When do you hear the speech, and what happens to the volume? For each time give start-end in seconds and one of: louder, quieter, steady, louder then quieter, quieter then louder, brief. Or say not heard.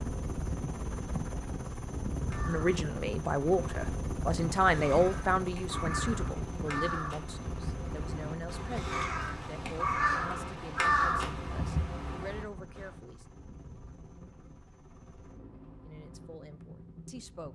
2.5-13.2 quieter
15.8-17.5 brief.